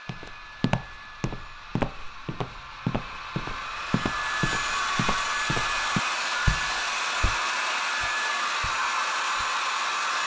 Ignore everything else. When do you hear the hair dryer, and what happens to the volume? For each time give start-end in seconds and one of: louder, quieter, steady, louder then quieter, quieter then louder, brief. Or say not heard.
0.0-10.2 louder.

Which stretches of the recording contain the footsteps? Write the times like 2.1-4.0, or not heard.
0.1-9.6.